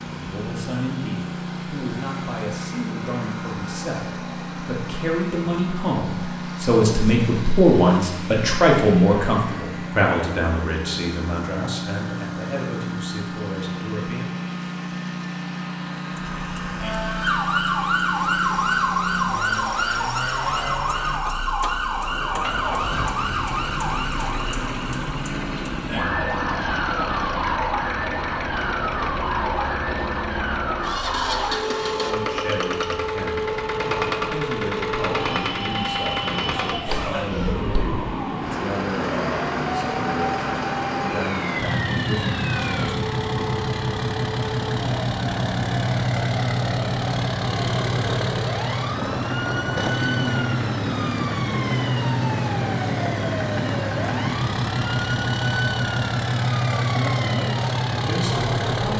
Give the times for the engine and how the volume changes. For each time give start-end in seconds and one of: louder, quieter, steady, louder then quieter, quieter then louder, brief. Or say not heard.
0.0-58.9 louder.